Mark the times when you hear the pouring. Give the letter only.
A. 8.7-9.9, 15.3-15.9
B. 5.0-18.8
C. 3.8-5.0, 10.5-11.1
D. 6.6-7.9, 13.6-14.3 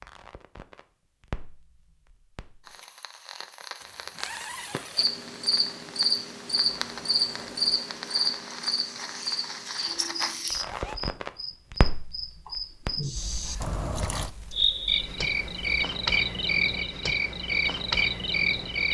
D.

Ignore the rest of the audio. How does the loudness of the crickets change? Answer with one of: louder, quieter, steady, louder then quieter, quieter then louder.
quieter then louder.